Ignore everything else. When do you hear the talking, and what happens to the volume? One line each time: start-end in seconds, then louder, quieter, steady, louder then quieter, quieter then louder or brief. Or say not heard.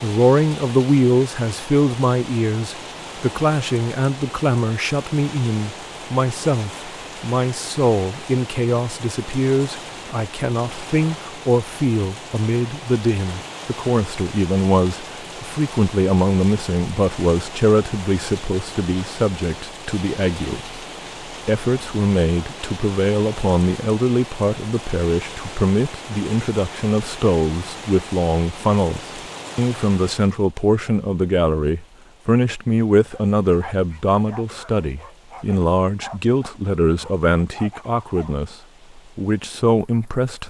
0.0-20.8 steady
21.4-40.4 steady.